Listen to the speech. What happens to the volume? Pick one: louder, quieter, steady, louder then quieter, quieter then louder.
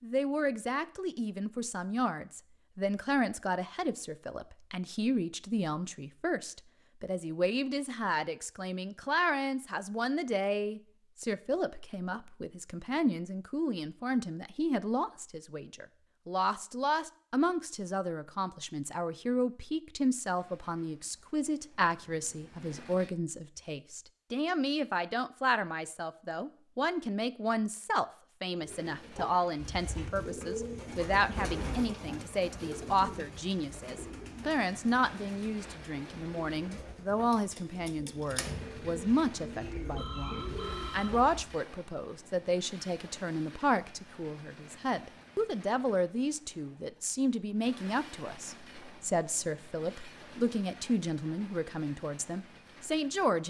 steady.